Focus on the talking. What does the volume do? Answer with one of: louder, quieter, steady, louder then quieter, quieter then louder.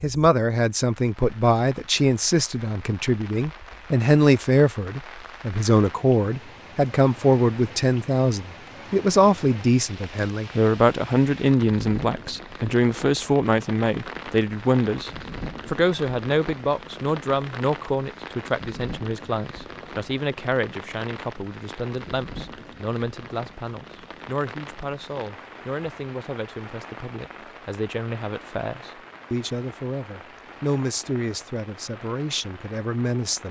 quieter.